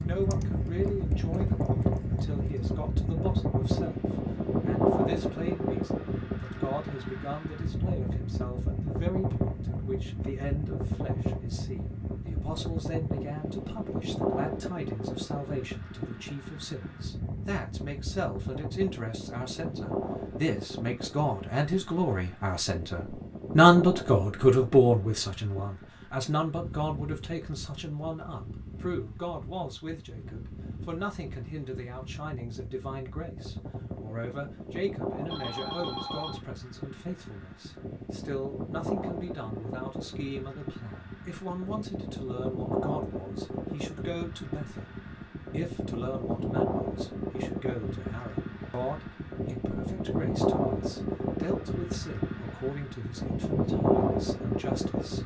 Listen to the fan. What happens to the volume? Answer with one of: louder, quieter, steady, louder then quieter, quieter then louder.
quieter then louder.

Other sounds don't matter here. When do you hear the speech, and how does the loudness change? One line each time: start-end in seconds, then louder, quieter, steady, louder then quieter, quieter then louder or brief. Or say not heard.
0.0-55.2 louder then quieter.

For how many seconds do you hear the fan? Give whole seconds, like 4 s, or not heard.
55 s.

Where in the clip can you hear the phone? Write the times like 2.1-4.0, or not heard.
35.2-36.4.